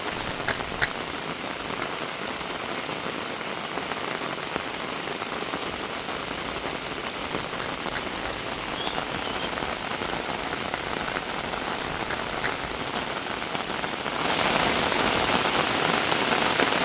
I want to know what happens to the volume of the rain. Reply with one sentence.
The volume of the rain goes up.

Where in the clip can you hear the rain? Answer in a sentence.
You can hear the rain from 0.0 to 16.8 s.